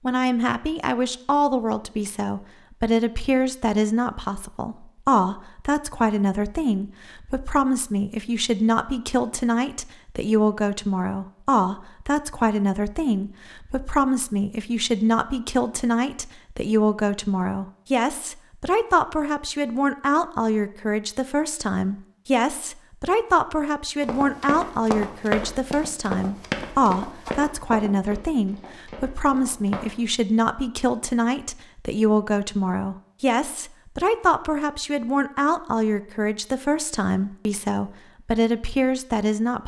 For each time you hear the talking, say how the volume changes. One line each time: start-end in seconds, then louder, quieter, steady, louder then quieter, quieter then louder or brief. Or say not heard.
0.0-39.6 steady.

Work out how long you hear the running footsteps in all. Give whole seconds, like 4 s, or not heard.
6 s.